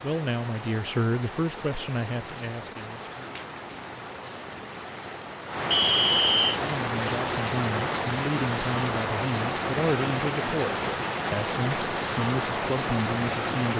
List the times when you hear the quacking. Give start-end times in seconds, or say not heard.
not heard.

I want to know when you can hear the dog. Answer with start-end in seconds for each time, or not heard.
not heard.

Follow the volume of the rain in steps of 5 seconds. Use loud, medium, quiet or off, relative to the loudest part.
medium, loud, loud.